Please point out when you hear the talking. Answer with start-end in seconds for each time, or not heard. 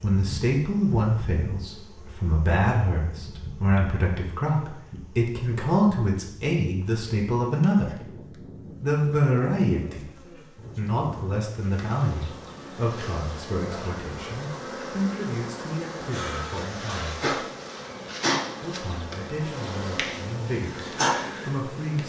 0.0-8.0, 8.8-10.1, 10.8-17.2, 18.6-22.0.